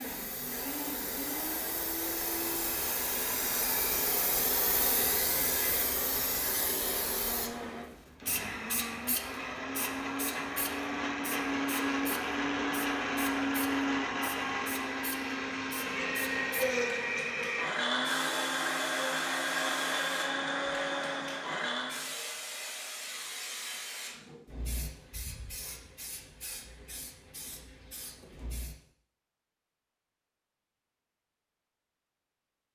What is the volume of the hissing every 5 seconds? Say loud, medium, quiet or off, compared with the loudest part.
loud, loud, medium, medium, medium, quiet, off.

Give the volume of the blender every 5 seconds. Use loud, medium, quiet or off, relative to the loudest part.
medium, medium, loud, loud, loud, off, off.